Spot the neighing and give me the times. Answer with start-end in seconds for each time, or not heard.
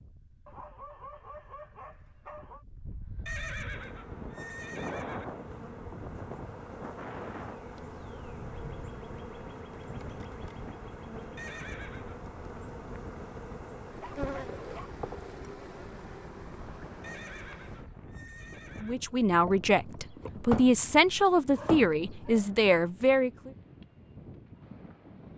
3.2-5.2, 11.3-12.2, 17.0-18.9.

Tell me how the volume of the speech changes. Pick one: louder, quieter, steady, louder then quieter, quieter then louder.
steady.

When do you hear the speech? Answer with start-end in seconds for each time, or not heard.
18.8-23.5.